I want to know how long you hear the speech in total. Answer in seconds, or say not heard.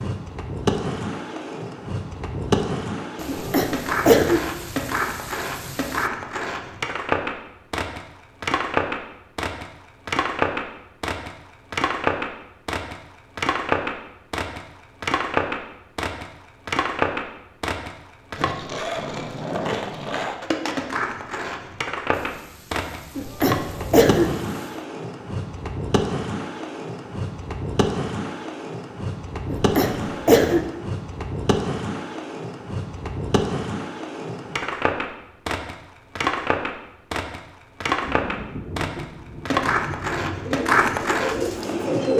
not heard.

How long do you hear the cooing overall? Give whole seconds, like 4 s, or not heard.
2 s.